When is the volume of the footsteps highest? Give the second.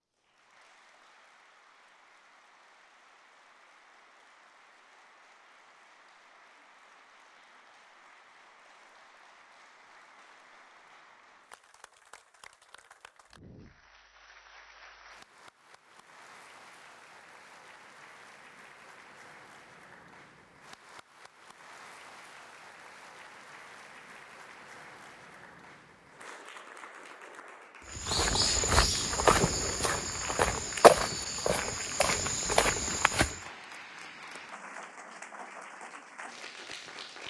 31 s.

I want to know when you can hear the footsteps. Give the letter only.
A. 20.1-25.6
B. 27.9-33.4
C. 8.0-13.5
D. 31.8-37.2
B.